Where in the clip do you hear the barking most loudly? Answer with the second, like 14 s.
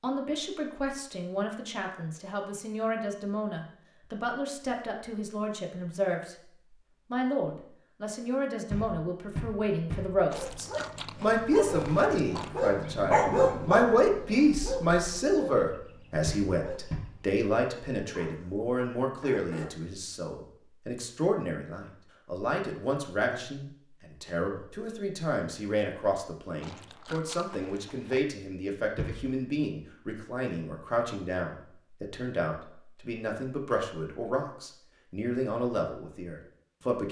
13 s.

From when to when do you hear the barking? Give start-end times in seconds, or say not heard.
10.3-19.7.